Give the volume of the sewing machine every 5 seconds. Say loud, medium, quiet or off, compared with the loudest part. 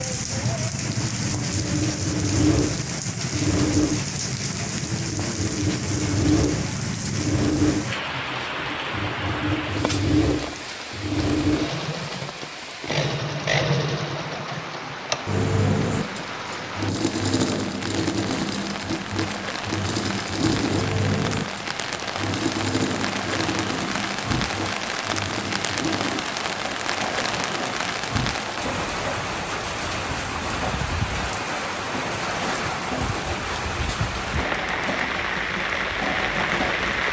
loud, loud, loud, loud, loud, medium, medium, medium.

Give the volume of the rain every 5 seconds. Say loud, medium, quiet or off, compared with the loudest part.
loud, loud, medium, medium, loud, loud, loud, loud.